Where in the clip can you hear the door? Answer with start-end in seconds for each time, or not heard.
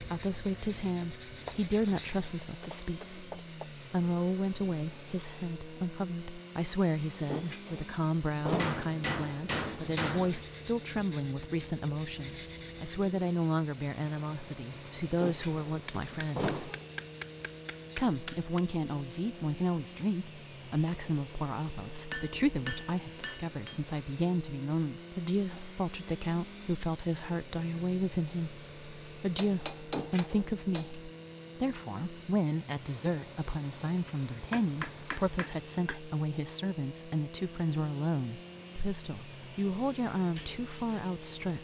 7.2-8.8, 15.1-16.9, 29.8-30.5.